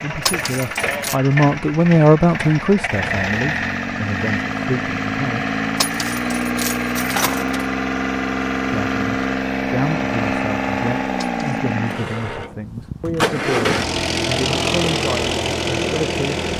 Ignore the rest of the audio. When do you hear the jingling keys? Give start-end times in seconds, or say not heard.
0.2-1.1, 5.8-7.7, 11.3-11.8.